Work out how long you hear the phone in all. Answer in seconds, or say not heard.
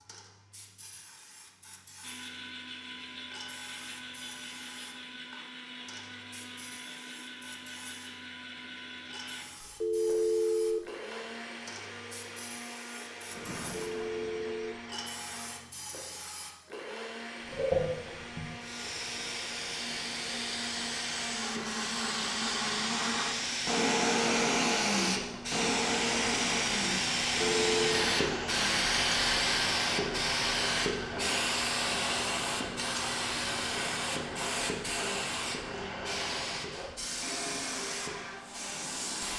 3 s.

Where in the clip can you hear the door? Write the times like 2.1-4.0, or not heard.
13.3-14.7.